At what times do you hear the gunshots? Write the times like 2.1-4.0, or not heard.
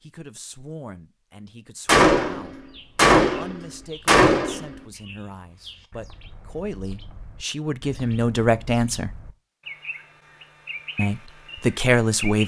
1.9-4.8.